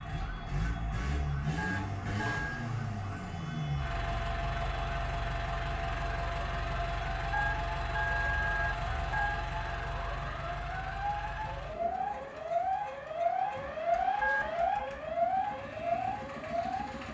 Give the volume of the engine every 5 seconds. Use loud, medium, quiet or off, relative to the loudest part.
loud, loud, medium, medium.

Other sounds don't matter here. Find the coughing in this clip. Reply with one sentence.
You can't hear the coughing here.